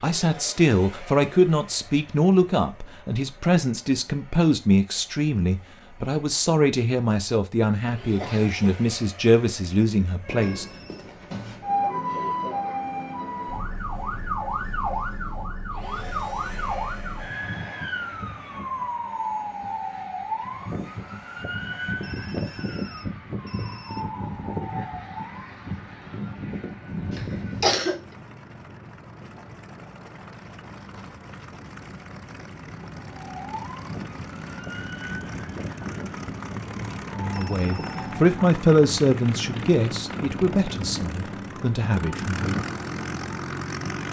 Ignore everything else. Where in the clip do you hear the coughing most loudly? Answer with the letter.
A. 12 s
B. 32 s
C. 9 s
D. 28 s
D.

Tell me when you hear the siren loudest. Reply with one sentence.
The loudest moment of the siren is at 12 seconds.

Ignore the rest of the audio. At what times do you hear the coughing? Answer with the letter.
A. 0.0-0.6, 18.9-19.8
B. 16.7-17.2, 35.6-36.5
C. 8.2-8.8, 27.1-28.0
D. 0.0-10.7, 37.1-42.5
C.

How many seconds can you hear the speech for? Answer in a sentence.
You can hear the speech for 16 seconds altogether.